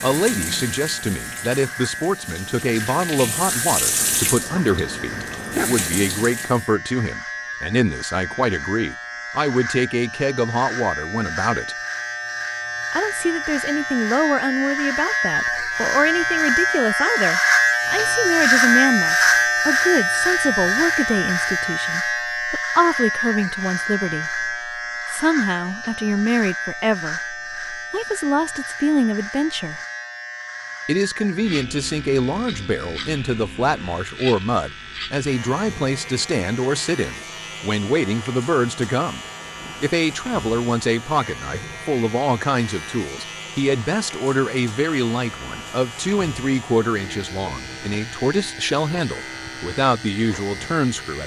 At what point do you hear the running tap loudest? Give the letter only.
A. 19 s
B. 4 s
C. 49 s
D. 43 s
B.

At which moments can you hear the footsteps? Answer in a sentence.
The footsteps can't be heard in this clip.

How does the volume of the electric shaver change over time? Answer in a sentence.
The volume of the electric shaver goes up, then down.